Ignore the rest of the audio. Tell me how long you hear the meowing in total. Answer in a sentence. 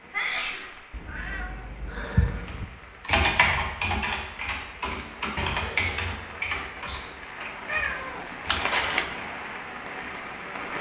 The meowing can be heard for 3 seconds in total.